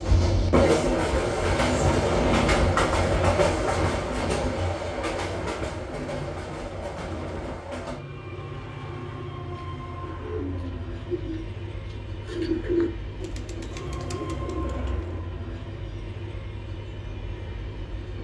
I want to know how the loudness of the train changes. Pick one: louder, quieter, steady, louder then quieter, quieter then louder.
quieter.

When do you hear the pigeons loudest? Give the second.
13 s.